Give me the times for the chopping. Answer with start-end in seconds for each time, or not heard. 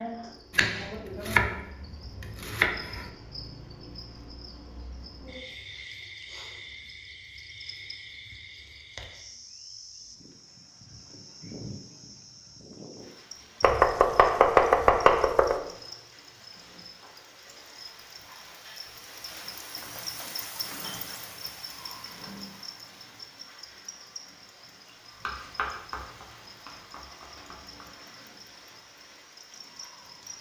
0.6-3.1, 13.6-15.6, 25.2-27.9.